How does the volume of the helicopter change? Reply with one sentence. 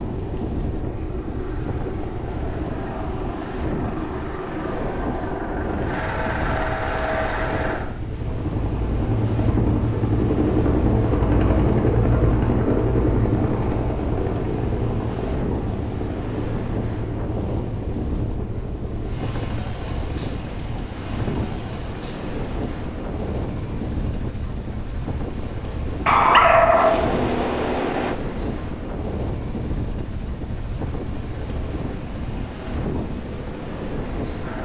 The loudness of the helicopter goes up, then down.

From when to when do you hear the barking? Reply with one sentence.
You can hear the barking from 26.1 to 28.1 s.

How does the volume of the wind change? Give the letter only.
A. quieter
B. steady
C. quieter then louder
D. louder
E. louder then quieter
B.